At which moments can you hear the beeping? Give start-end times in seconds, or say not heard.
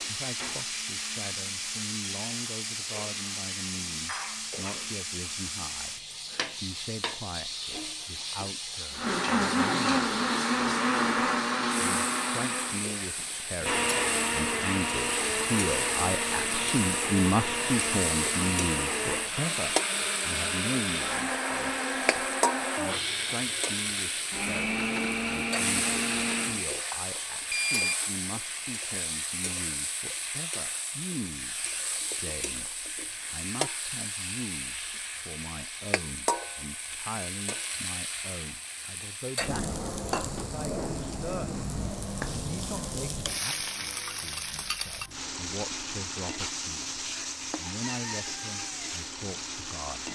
26.9-28.1.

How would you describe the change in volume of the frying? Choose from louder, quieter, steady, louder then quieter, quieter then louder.
steady.